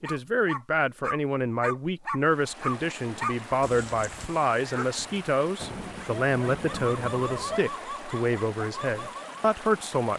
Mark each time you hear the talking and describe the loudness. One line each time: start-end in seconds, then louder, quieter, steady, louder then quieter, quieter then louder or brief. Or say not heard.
0.0-10.1 steady.